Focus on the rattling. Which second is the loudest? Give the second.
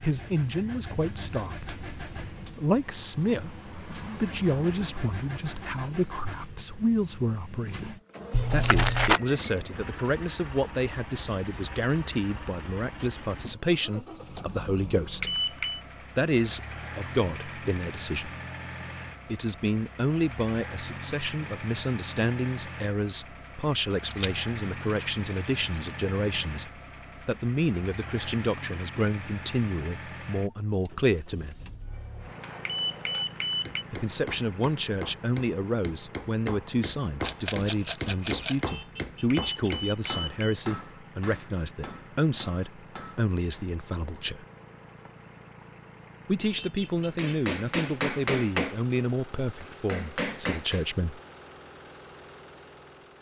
9 s.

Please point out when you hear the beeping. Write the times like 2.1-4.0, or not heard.
15.2-15.8, 32.6-33.9, 39.3-40.5.